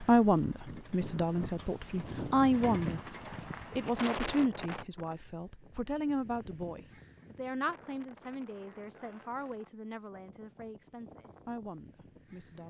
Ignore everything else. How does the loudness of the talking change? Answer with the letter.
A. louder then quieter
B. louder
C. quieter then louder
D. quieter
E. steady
D.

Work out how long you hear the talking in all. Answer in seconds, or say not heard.
12 s.